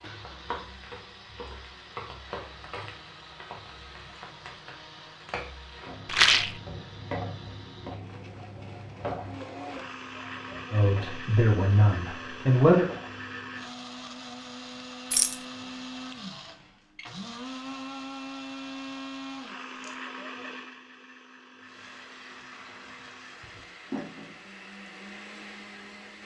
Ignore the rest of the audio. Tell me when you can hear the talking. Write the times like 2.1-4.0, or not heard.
10.7-12.8.